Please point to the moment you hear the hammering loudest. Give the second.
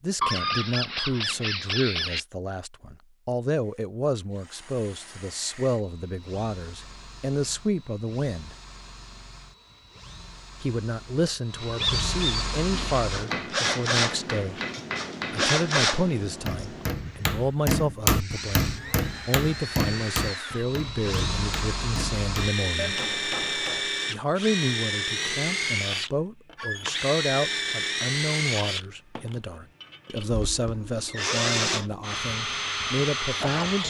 18 s.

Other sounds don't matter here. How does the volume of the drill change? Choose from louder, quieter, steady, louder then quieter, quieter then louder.
louder.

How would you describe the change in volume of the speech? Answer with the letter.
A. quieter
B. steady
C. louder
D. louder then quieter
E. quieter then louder
B.